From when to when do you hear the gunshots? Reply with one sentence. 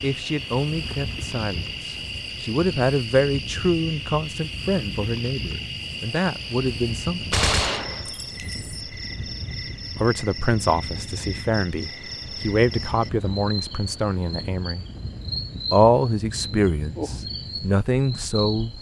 You can hear the gunshots from 7.3 to 8.8 s.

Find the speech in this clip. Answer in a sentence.
The speech can be heard from 0.0 to 7.3 s, from 9.9 to 14.8 s and from 15.6 to 18.7 s.